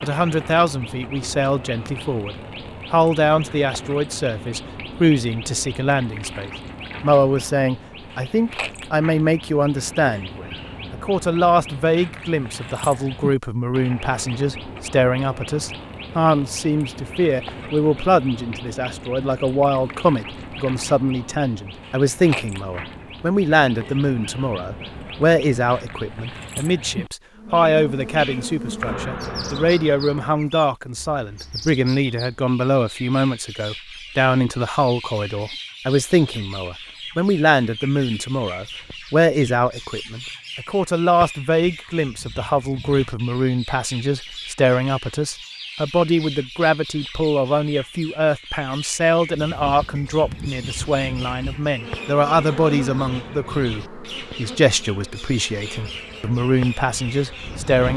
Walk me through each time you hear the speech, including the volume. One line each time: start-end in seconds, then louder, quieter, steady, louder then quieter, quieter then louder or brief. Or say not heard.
0.0-57.9 steady.